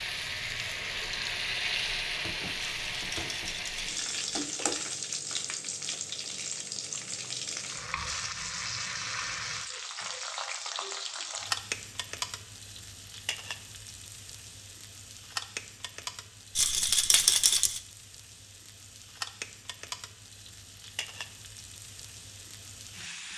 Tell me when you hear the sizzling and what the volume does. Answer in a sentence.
You can hear the sizzling from 0.0 to 23.3 s, getting quieter.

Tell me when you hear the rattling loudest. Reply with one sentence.
The loudest moment of the rattling is at 17 seconds.